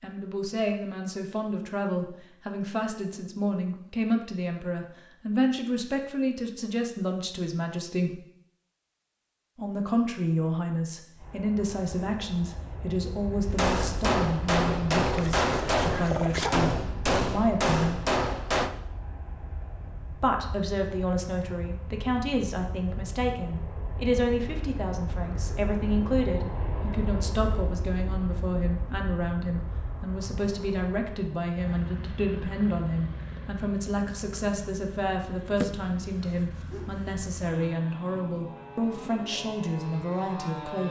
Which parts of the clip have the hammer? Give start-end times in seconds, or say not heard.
13.4-18.7.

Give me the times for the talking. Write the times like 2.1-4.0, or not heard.
0.0-8.2, 9.6-18.0, 20.1-40.8.